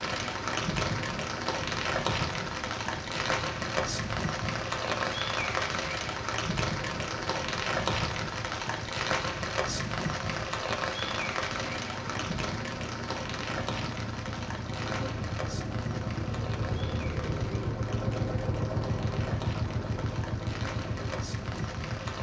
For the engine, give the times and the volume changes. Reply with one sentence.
You can hear the engine from 0.0 to 22.1 s, getting louder.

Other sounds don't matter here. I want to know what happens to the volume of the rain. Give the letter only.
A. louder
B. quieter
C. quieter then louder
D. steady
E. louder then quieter
B.